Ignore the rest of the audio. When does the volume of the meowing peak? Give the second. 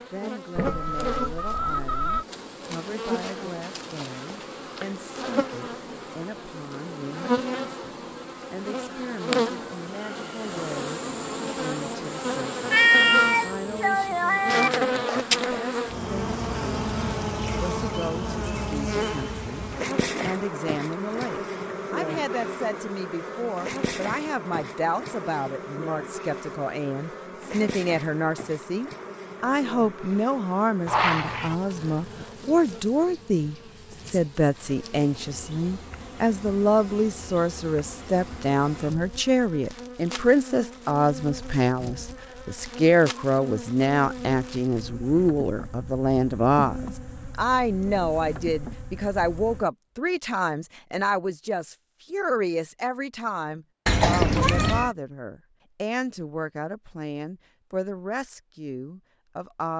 13 s.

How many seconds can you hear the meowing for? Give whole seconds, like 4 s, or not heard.
4 s.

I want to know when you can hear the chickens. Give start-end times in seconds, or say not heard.
0.6-2.2.